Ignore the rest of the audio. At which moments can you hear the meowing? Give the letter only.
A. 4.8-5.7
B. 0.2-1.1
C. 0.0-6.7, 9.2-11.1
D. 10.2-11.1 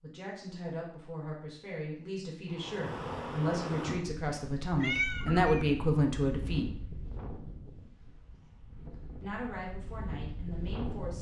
A.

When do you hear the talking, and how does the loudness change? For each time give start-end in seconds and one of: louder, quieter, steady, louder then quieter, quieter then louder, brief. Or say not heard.
0.0-6.7 louder
9.2-11.1 brief.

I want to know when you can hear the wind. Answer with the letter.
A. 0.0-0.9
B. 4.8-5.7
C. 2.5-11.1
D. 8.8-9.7
C.